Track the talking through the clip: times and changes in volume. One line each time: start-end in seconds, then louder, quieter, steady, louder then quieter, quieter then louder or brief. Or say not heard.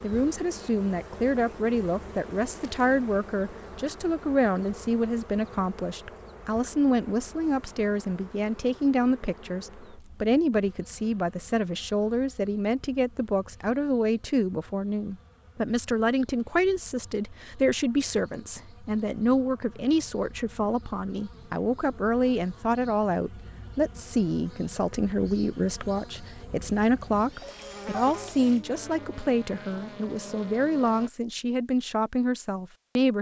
0.0-33.1 steady.